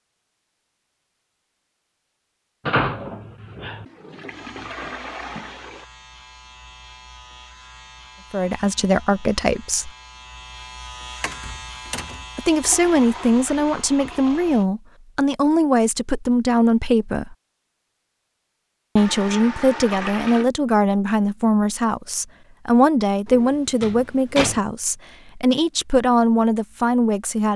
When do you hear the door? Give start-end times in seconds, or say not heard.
2.6-3.9, 11.2-12.2, 23.2-24.6.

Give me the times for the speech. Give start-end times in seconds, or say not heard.
8.3-9.9, 12.3-17.4, 18.9-27.5.